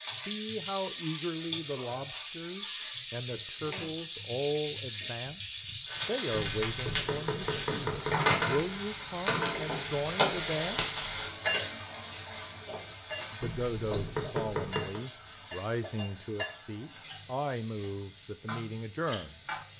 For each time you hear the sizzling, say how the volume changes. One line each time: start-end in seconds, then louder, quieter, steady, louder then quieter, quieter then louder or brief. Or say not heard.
0.0-19.7 louder then quieter.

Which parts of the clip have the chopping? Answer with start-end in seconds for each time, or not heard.
6.3-8.3, 13.4-15.0.